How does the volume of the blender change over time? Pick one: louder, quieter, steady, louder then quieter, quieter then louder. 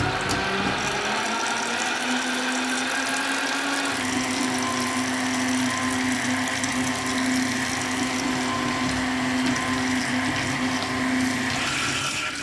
steady.